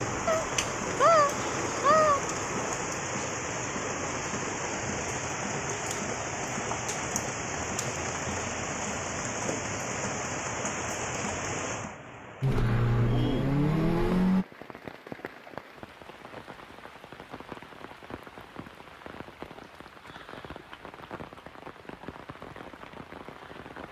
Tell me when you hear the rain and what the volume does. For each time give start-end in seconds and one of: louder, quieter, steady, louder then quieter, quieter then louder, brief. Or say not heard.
0.0-23.8 quieter.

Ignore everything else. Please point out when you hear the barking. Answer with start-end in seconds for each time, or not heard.
not heard.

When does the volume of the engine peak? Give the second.
14 s.